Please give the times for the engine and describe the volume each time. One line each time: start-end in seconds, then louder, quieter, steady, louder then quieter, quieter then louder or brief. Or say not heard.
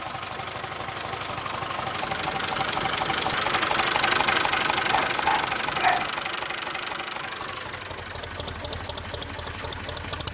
0.0-10.2 louder then quieter.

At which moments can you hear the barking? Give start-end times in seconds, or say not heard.
4.8-6.1.